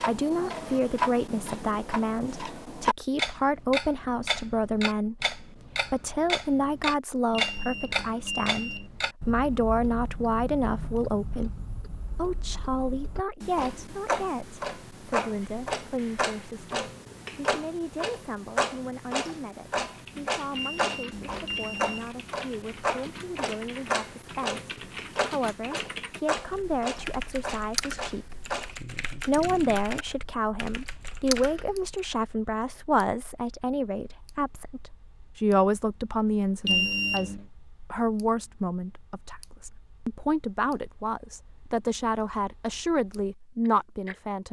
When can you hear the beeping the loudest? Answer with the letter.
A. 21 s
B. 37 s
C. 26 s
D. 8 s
B.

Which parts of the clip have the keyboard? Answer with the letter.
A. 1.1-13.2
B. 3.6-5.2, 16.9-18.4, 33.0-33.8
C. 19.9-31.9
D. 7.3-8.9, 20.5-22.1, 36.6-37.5
C.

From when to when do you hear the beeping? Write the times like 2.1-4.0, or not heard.
7.3-8.9, 20.5-22.1, 36.6-37.5.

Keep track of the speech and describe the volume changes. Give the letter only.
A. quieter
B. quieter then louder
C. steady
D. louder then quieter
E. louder
B.